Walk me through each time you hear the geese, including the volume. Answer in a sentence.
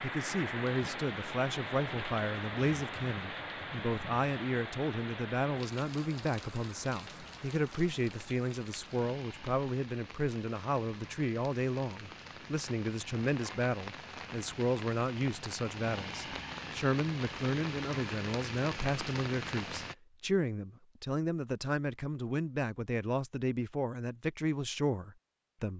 The geese can't be heard in this clip.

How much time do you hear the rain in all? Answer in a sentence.
The rain can be heard for 20 seconds in total.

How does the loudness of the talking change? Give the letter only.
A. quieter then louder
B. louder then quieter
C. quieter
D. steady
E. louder
D.